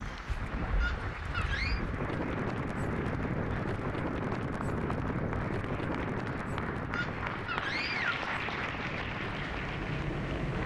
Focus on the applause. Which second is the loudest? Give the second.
8 s.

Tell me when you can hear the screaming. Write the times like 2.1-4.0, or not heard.
0.8-1.8, 6.9-8.1.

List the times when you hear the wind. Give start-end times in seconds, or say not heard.
0.0-10.6.